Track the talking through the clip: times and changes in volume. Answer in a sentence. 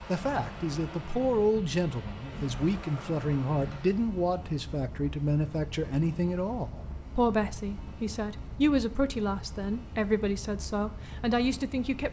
You can hear the talking from 0.1 to 12.0 s, at a steady volume.